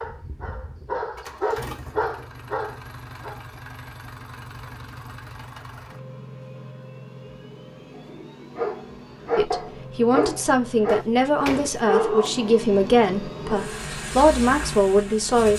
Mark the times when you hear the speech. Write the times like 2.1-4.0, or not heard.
9.3-15.5.